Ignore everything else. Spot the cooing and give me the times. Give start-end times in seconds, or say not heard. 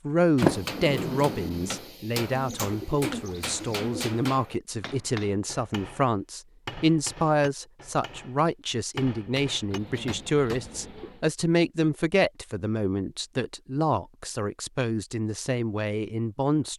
2.3-4.2, 9.7-11.2.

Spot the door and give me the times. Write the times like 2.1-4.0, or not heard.
0.4-1.8.